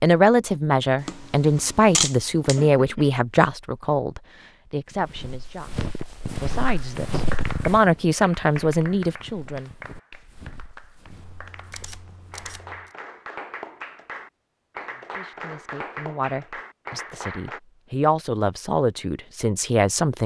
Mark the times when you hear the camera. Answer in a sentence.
The camera can be heard from 1.0 to 2.6 s and from 11.1 to 12.9 s.